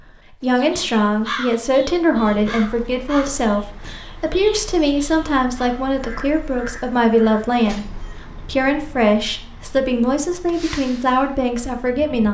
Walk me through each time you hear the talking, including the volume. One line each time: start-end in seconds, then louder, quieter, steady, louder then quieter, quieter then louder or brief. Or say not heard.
0.4-12.2 steady.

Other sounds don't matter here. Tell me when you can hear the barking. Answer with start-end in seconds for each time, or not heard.
not heard.